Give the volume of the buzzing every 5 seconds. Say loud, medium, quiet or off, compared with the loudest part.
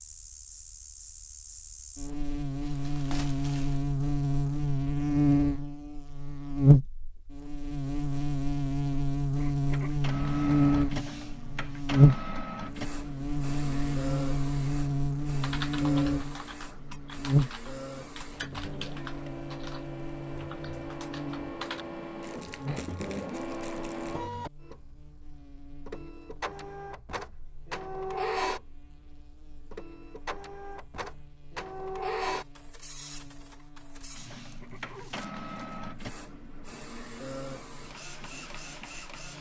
medium, loud, loud, medium, quiet, quiet, quiet, quiet.